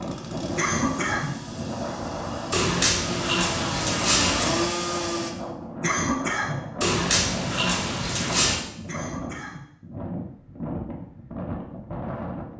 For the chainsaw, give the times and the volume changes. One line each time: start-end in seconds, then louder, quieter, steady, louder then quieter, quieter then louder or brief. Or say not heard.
0.0-5.3 louder.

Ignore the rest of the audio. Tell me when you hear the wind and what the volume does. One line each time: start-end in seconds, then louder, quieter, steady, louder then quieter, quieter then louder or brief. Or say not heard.
0.0-12.5 steady.